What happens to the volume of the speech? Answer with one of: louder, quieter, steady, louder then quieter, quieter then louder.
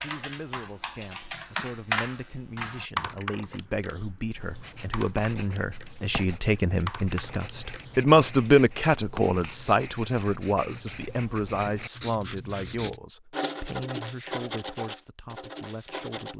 louder then quieter.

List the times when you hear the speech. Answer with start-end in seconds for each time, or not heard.
0.0-16.3.